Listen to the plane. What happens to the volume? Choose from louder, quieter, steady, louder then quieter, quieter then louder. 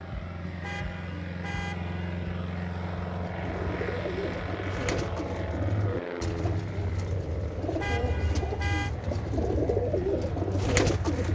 quieter.